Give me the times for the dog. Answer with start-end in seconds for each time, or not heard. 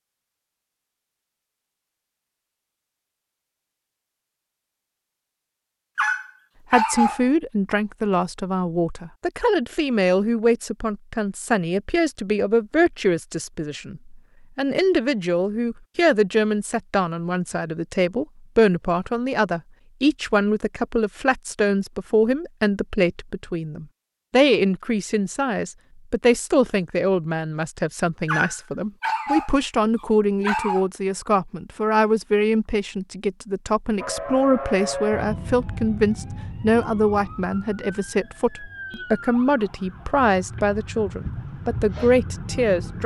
6.0-7.2, 28.2-30.9.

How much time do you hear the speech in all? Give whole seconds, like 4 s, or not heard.
36 s.